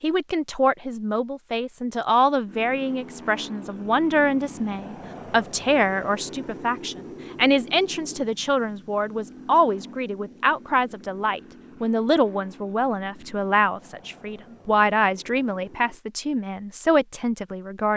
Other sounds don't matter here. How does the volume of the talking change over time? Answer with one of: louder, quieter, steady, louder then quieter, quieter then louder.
steady.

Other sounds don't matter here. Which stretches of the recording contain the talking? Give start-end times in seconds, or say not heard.
0.0-17.9.